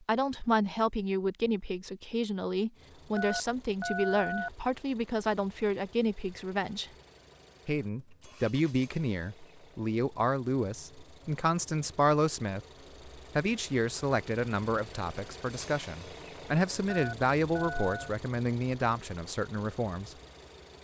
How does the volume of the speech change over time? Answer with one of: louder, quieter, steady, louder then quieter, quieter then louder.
steady.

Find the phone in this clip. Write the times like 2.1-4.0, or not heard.
3.1-4.5, 16.9-18.1.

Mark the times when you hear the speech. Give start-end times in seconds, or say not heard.
0.1-6.9, 7.7-20.1.